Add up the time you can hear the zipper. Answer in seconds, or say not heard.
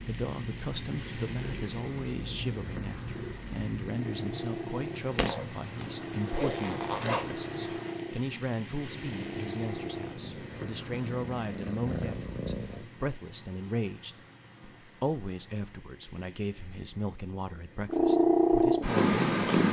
2 s.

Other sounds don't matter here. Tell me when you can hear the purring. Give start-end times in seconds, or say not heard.
0.0-12.8, 17.9-19.6.